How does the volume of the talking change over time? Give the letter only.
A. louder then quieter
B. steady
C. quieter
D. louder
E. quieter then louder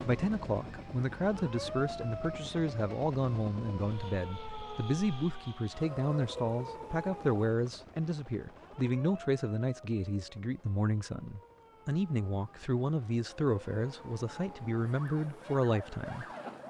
B.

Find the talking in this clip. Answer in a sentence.
You can hear the talking from 0.0 to 16.2 s.